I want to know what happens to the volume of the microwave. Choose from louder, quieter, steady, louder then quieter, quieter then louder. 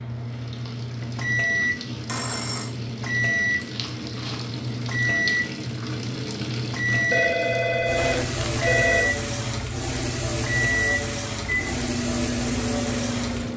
steady.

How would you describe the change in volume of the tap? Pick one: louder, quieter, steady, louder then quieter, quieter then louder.
louder.